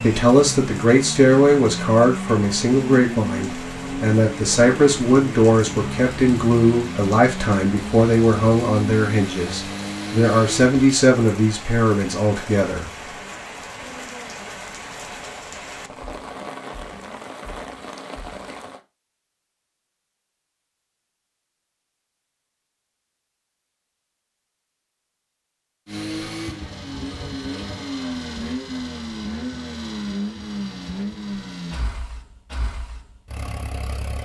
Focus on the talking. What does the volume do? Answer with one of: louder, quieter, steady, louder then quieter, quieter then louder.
steady.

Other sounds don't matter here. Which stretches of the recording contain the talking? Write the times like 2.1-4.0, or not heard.
0.0-12.9.